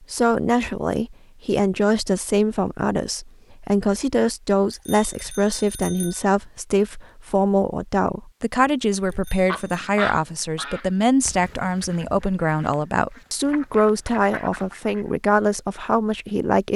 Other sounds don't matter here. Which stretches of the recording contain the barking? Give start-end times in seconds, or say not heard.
not heard.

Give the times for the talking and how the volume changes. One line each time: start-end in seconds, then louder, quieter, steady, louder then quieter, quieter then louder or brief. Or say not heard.
0.1-16.7 steady.